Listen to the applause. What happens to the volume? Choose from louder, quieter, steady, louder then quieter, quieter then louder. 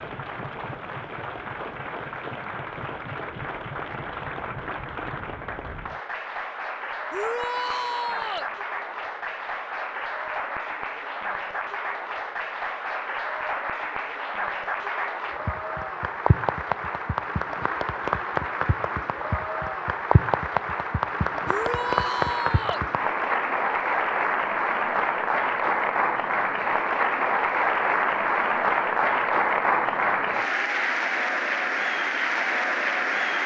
louder.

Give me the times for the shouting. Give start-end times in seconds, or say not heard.
7.1-8.5, 21.4-22.9.